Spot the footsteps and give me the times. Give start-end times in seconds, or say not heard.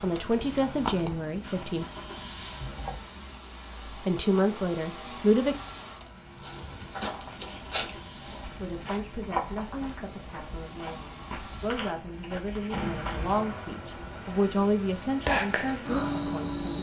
6.4-13.4.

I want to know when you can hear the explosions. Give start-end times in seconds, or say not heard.
12.7-13.9.